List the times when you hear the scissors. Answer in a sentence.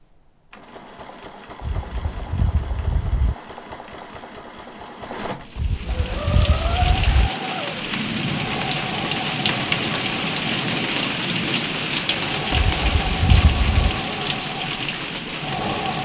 You can hear the scissors from 1.6 to 3.4 s, from 5.5 to 7.3 s and from 12.5 to 14.0 s.